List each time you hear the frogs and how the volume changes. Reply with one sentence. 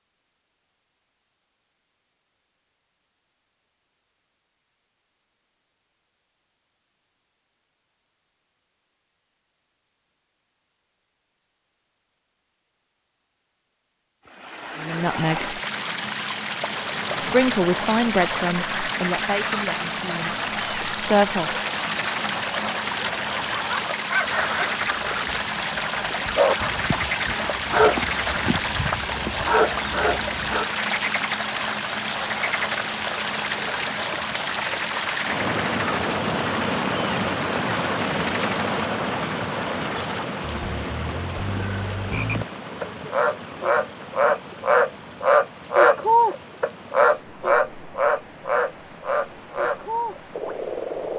The frogs can be heard from 16.8 to 51.1 s, getting louder.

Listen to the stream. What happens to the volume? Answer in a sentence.
The volume of the stream goes down.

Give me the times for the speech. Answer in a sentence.
You can hear the speech from 14.8 to 15.6 s and from 17.2 to 21.5 s.